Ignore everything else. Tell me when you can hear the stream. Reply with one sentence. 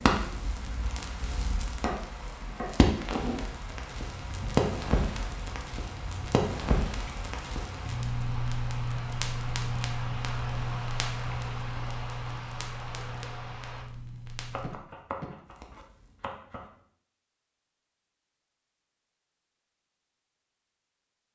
You can hear the stream from 0.0 to 13.8 s.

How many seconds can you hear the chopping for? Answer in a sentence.
The chopping can be heard for 4 seconds in total.